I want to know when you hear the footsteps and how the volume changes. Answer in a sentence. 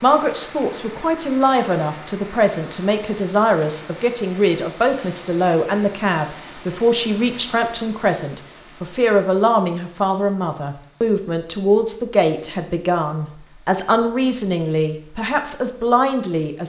You can't hear the footsteps here.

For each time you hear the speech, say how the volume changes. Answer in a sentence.
You can hear the speech from 0.0 to 16.6 s, at a steady volume.